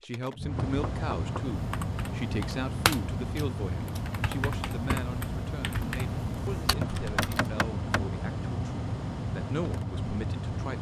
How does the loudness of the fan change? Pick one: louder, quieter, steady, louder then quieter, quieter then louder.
steady.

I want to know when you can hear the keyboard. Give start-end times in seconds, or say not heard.
1.5-7.5.